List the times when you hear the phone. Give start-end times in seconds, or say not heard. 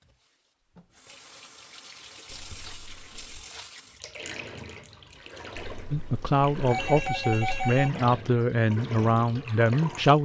2.2-3.5, 5.5-7.9.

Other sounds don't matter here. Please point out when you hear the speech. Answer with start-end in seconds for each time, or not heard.
5.9-10.2.